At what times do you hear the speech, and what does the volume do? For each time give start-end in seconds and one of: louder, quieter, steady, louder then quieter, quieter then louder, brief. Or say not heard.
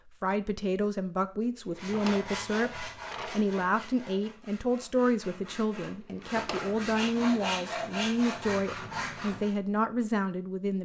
0.2-10.8 steady.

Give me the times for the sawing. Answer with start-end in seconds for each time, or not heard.
1.8-9.6.